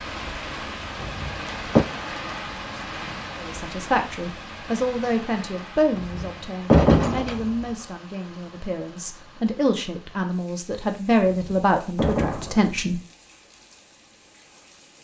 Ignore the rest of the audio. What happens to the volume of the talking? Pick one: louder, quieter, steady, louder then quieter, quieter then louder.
quieter then louder.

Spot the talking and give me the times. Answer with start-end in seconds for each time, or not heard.
3.4-13.0.